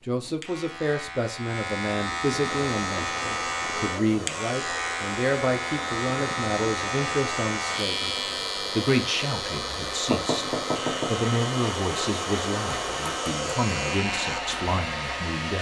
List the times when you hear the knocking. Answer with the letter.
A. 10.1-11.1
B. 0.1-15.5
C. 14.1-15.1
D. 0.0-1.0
A.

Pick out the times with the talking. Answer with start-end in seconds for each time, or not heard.
0.1-15.5.